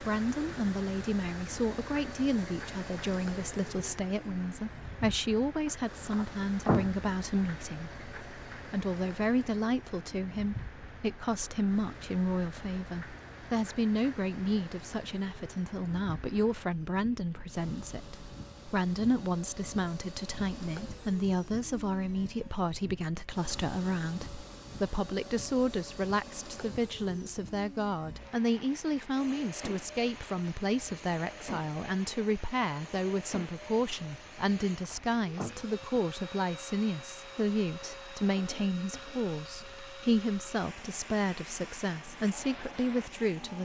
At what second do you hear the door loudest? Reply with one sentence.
The volume of the door peaks at 7 seconds.